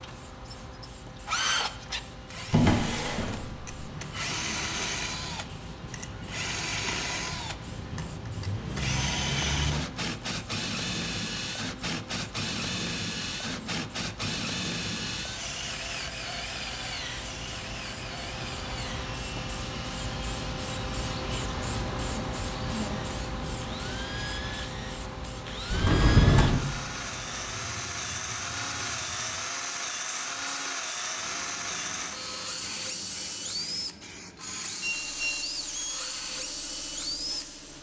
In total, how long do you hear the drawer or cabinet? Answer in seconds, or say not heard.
2 s.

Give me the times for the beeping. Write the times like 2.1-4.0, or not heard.
34.8-35.4.